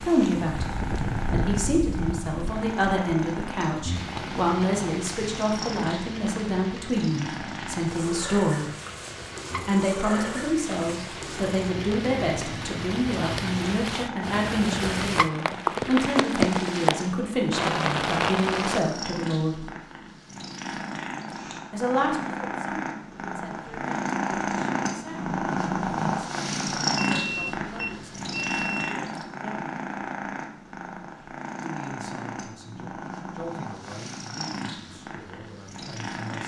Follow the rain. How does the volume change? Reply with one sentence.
The loudness of the rain goes down, then up.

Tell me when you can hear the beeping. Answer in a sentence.
You can hear the beeping from 26.9 to 29.0 s.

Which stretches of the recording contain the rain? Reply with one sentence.
The rain can be heard from 0.0 to 18.8 s.